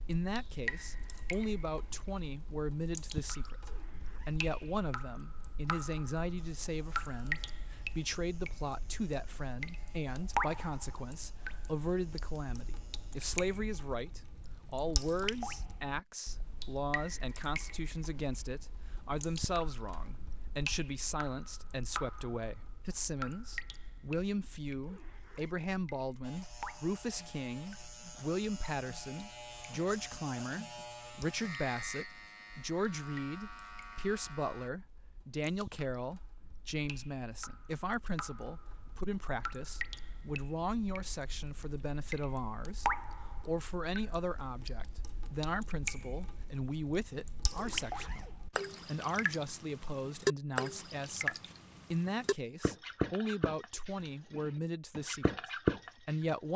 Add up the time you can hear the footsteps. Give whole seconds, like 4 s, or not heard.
not heard.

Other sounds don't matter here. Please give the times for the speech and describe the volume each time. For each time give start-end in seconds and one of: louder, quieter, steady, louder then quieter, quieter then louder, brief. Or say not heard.
0.1-56.5 steady.